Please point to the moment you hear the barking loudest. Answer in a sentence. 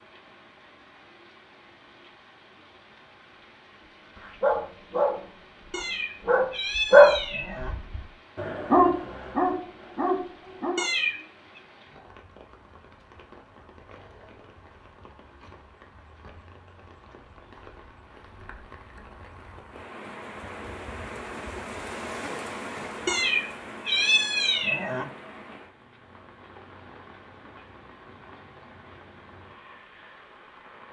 The loudest moment of the barking is at 7 seconds.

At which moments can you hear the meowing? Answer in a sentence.
The meowing can be heard from 5.7 to 7.8 s, from 10.8 to 11.6 s and from 23.1 to 25.1 s.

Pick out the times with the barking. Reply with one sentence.
The barking can be heard from 4.2 to 10.8 s.